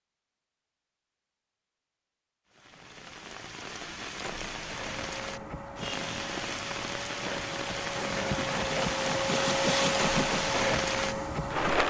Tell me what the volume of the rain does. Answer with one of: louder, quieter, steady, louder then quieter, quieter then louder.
louder.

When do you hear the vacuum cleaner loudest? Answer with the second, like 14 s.
10 s.